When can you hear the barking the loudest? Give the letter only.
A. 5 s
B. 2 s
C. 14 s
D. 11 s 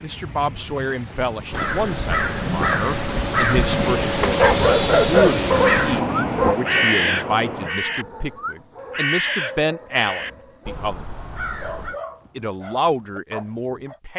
A.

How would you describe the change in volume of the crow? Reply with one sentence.
The volume of the crow goes down.